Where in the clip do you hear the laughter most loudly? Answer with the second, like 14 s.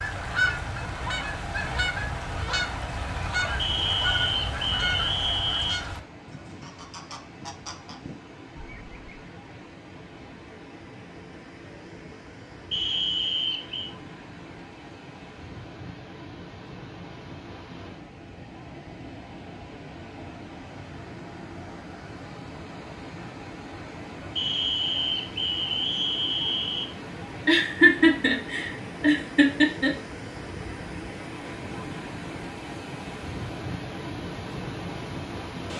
28 s.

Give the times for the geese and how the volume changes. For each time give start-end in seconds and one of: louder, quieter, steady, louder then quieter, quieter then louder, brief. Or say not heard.
0.0-9.3 quieter.